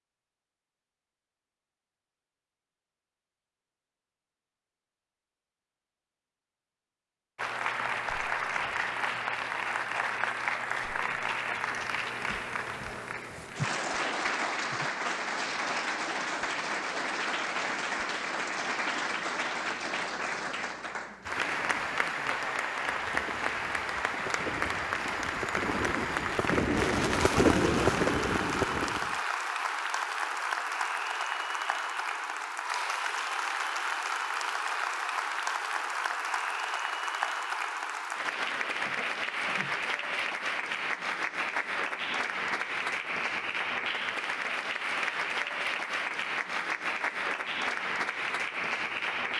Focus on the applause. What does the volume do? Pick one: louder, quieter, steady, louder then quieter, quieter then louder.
steady.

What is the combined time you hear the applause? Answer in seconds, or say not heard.
42 s.